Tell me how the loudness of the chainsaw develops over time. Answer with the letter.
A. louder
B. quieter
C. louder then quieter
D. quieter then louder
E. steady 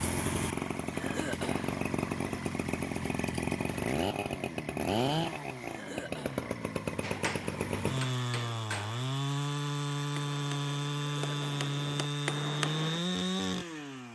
E.